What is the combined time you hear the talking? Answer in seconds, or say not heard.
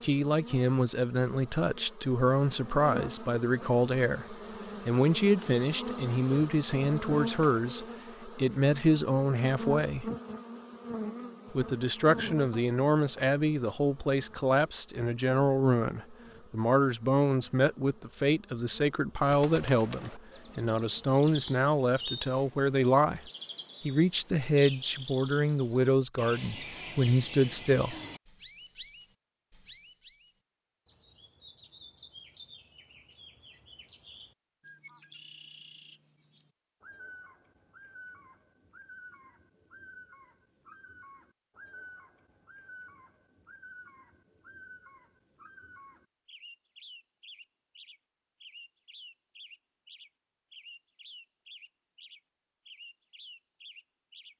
26 s.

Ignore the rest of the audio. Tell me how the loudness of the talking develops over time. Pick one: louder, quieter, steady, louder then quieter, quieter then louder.
steady.